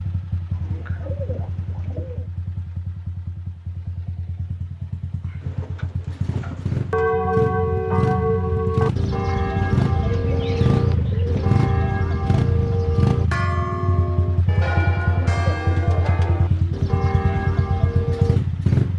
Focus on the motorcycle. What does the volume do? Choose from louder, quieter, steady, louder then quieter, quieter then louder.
louder.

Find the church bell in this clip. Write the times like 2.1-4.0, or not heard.
6.9-18.4.